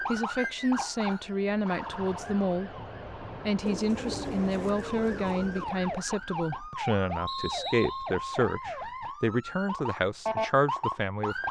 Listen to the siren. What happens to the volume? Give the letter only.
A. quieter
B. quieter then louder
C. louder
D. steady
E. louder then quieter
B.